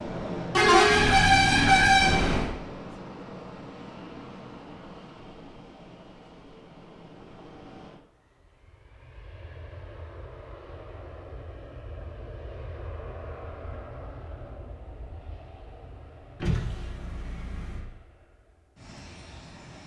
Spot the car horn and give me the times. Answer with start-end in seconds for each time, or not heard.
0.6-2.5, 16.4-17.9.